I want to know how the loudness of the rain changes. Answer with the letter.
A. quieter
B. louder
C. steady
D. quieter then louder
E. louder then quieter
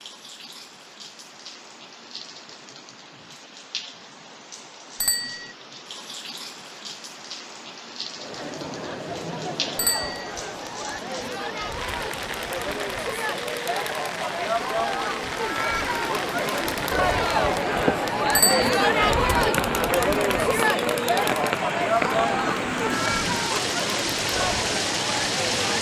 B.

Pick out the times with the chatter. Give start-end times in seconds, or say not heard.
8.2-25.7.